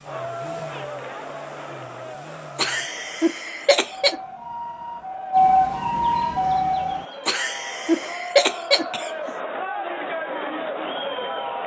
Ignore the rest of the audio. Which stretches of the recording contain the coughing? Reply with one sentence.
The coughing can be heard from 2.5 to 4.2 s and from 7.2 to 9.3 s.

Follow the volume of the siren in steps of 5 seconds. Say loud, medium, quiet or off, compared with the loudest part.
quiet, loud, off.